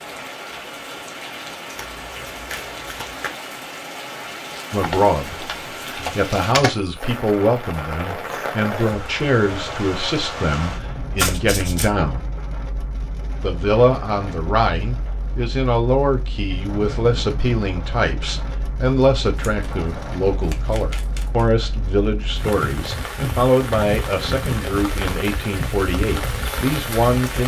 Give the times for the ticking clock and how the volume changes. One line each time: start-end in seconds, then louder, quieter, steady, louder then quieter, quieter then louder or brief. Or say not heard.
not heard.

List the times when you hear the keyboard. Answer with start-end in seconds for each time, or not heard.
4.8-6.8.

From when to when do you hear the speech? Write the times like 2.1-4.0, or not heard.
4.7-12.2, 13.4-27.4.